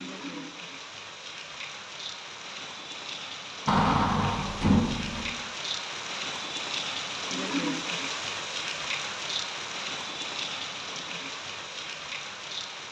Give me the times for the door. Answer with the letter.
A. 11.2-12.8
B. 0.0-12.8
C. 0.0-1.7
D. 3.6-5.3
D.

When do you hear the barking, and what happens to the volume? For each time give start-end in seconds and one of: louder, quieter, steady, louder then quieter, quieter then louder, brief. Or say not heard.
not heard.